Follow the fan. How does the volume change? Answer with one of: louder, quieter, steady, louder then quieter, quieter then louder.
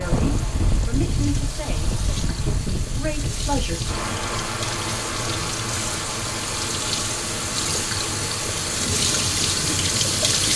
quieter.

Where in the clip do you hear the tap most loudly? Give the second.
10 s.